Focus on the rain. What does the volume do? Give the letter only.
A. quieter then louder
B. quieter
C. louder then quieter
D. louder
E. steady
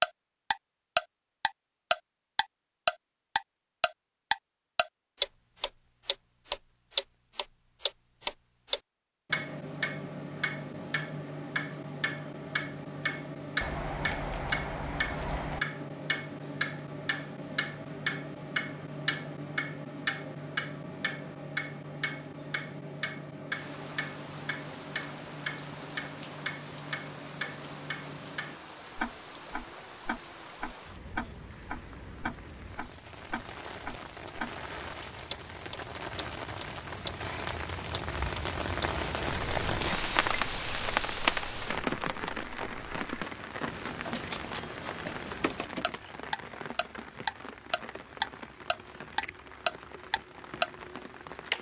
C.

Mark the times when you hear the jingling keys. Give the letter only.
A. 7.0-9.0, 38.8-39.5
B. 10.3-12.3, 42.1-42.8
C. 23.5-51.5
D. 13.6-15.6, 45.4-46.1
D.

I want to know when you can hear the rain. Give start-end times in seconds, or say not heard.
23.5-51.5.